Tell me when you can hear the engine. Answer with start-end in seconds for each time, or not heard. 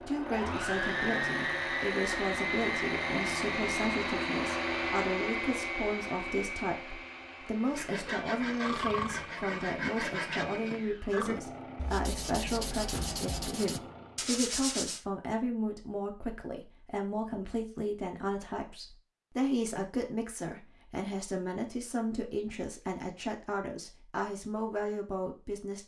0.0-14.4.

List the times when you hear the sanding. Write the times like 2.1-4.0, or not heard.
7.7-15.1.